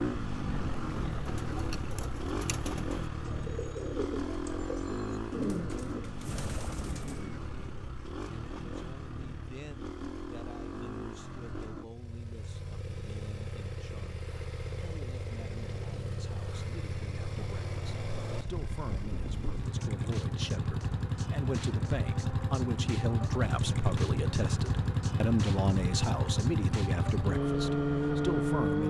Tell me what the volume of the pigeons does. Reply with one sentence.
The loudness of the pigeons goes up, then down.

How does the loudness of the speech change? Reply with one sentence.
The volume of the speech goes up.